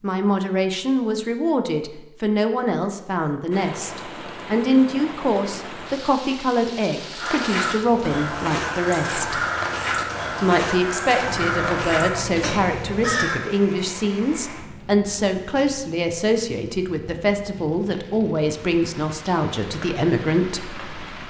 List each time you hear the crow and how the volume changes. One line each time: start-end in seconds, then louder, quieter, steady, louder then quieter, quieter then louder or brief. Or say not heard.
7.2-13.5 steady.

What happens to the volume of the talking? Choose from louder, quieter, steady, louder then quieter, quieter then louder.
steady.